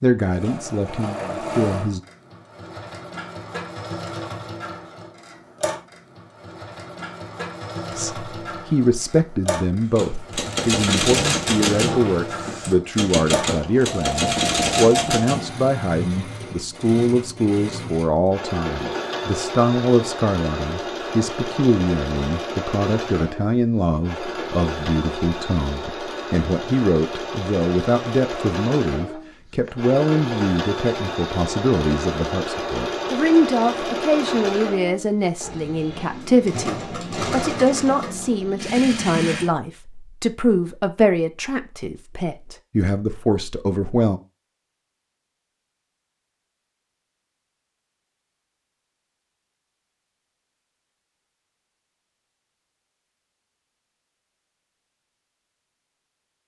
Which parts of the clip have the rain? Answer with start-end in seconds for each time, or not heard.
not heard.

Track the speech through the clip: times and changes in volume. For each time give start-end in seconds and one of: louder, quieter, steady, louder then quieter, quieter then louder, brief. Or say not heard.
0.0-2.0 brief
7.9-44.2 steady.